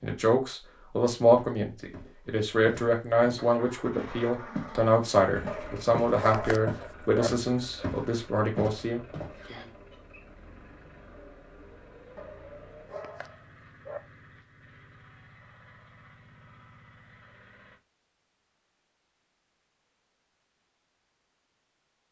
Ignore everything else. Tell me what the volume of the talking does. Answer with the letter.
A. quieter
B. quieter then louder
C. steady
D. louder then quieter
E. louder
A.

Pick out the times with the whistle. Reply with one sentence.
You can hear the whistle from 9.4 to 10.2 s.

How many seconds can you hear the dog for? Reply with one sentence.
You can hear the dog for 4 seconds altogether.